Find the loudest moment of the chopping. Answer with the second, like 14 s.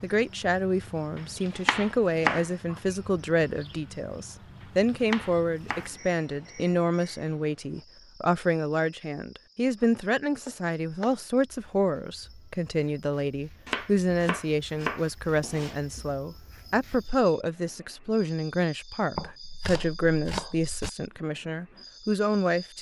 2 s.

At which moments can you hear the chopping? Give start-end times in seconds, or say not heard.
1.1-2.5, 4.6-5.9, 9.8-11.2, 13.7-16.0, 19.1-20.9.